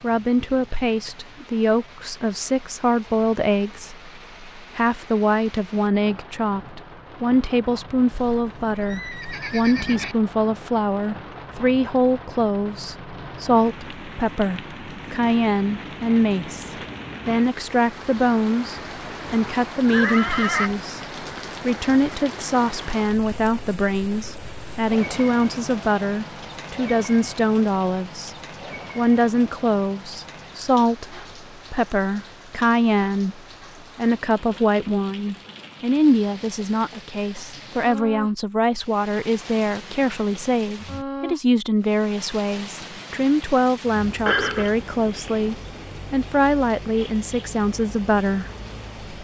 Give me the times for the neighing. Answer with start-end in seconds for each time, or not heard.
8.1-10.2, 19.9-20.8, 44.2-44.8.